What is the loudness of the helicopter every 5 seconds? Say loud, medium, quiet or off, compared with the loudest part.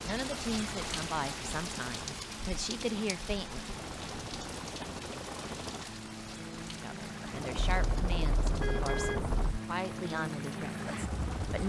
medium, loud, loud.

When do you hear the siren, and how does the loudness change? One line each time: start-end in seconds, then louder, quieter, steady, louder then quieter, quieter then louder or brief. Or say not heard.
not heard.